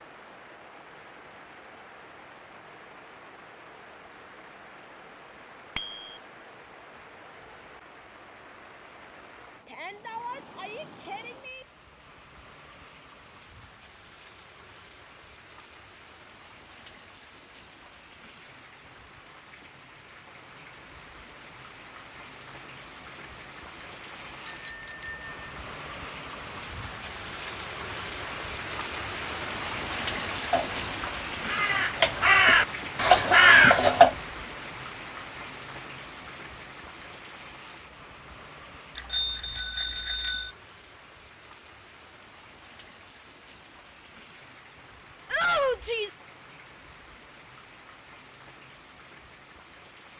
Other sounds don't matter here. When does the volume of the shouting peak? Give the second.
46 s.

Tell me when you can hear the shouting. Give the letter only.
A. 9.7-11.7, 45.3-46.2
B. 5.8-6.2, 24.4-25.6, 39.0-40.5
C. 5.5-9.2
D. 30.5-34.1
A.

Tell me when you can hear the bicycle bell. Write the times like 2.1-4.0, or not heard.
5.8-6.2, 24.4-25.6, 39.0-40.5.